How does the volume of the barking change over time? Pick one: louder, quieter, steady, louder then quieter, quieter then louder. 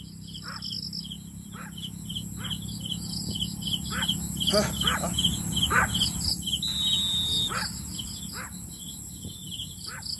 louder then quieter.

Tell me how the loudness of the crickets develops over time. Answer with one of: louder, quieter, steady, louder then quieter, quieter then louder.
louder then quieter.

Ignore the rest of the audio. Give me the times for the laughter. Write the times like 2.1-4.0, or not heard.
4.5-5.2.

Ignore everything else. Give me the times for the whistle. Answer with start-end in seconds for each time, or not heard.
6.6-7.5.